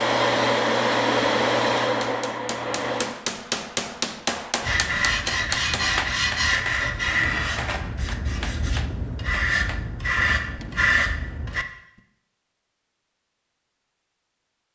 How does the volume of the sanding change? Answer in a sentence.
The loudness of the sanding goes down, then up.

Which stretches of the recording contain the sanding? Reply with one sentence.
The sanding can be heard from 4.6 to 11.7 s.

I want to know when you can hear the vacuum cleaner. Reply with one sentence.
The vacuum cleaner can be heard from 0.0 to 3.1 s.